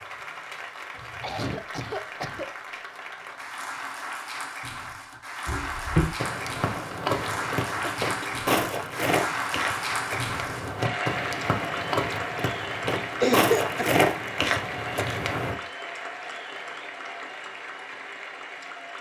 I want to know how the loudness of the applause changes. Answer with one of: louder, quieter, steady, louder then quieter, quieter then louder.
louder then quieter.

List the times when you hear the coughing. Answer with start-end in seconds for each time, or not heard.
1.1-2.5, 7.8-8.4, 13.2-13.8.